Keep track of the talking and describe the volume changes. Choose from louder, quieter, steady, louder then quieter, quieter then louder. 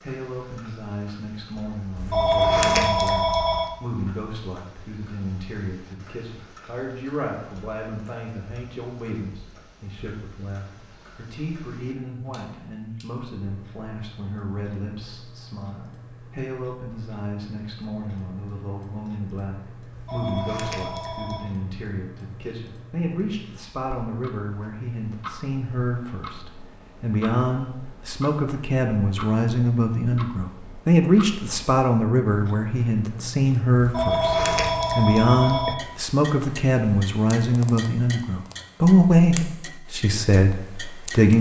louder.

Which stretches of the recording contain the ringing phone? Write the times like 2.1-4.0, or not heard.
1.9-3.7, 19.9-21.4, 33.8-35.8.